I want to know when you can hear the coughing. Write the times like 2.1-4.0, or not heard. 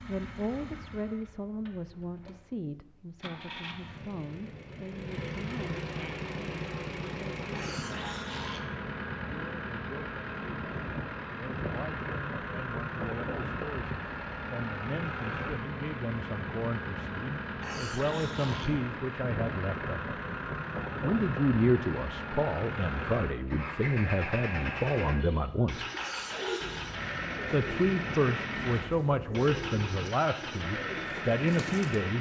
7.5-8.7, 17.6-18.8, 25.9-26.9.